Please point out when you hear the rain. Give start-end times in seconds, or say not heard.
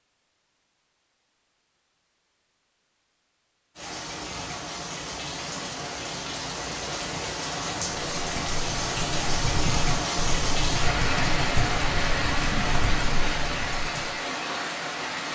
3.8-15.3.